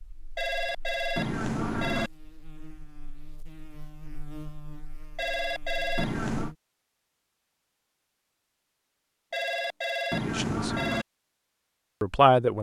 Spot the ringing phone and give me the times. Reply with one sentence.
You can hear the ringing phone from 0.3 to 2.1 s, from 5.2 to 6.5 s and from 9.3 to 11.1 s.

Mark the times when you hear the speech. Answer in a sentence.
You can hear the speech from 10.2 to 10.7 s and from 12.0 to 12.5 s.